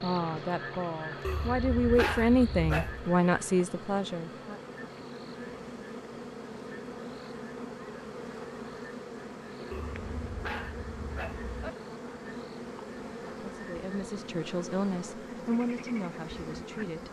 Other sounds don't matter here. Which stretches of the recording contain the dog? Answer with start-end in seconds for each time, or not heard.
1.2-3.1, 9.7-11.7.